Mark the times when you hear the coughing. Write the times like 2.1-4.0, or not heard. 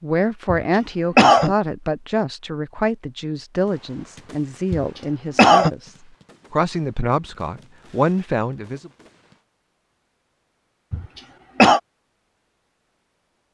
0.5-1.6, 4.7-5.7, 10.9-11.8.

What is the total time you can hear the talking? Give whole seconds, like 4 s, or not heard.
9 s.